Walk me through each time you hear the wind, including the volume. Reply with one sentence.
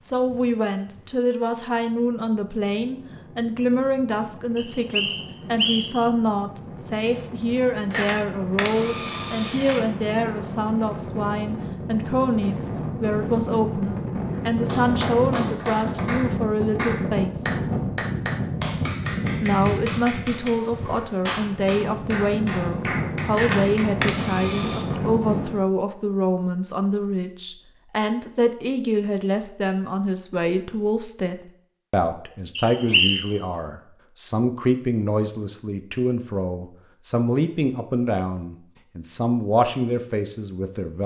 You can hear the wind from 0.0 to 25.6 s, getting louder.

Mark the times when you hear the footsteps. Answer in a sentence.
The footsteps can't be heard in this clip.